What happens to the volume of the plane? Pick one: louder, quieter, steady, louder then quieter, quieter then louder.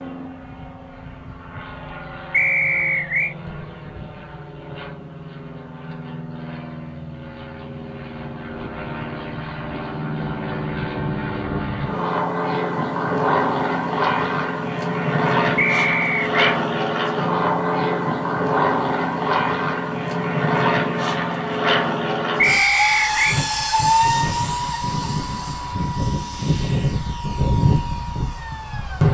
louder.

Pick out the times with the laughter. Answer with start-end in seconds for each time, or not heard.
not heard.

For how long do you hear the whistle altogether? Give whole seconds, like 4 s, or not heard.
3 s.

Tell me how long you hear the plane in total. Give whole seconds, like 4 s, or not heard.
29 s.